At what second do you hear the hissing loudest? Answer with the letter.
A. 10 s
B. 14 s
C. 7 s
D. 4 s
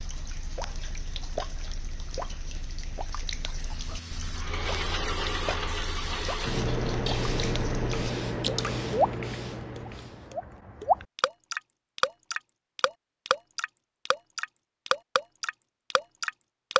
C.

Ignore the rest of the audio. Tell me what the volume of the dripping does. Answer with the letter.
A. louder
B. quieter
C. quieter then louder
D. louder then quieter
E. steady
A.